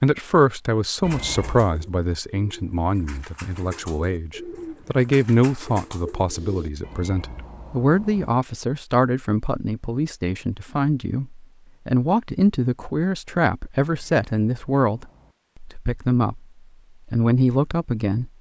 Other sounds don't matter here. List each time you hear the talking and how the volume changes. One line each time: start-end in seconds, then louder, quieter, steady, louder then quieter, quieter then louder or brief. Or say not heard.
0.0-16.4 steady
17.1-18.3 brief.